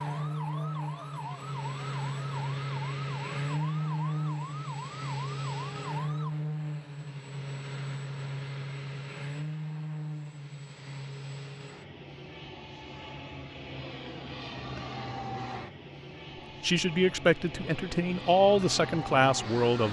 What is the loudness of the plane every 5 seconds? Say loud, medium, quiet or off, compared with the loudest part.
loud, loud, medium, medium.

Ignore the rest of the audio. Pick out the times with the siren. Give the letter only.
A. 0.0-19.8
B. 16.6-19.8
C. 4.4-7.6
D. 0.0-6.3
D.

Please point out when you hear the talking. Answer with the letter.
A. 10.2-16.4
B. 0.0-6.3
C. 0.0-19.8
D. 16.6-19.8
D.